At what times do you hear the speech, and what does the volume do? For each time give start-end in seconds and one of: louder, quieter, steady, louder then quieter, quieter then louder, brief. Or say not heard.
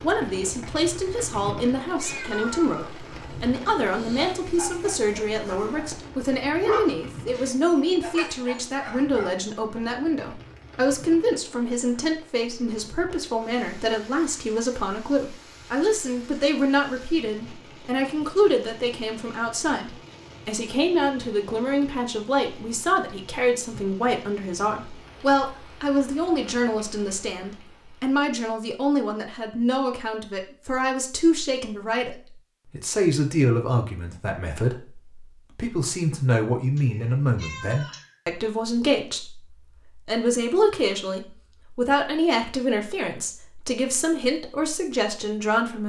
0.0-45.8 steady.